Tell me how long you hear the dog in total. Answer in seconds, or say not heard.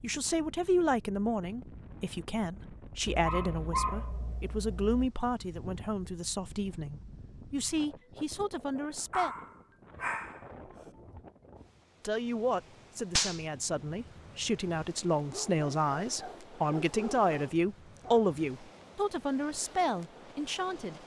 6 s.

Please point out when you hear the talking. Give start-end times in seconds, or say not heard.
0.0-9.3, 12.0-21.0.